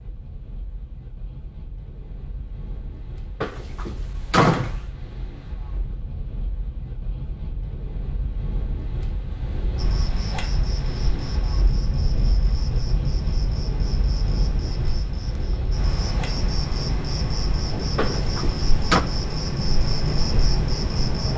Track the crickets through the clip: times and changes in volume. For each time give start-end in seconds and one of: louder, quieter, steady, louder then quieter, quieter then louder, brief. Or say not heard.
9.8-21.3 louder.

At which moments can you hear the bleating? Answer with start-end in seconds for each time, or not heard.
not heard.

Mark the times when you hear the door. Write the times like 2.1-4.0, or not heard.
3.4-4.8, 17.9-19.1.